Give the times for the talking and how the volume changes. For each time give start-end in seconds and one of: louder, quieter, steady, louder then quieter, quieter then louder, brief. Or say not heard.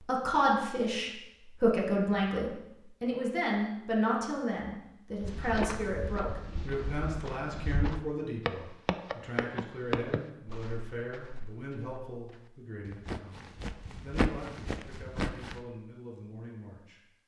0.0-17.0 quieter.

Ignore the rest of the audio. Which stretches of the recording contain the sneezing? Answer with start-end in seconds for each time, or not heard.
not heard.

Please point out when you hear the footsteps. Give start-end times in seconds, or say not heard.
5.2-15.6.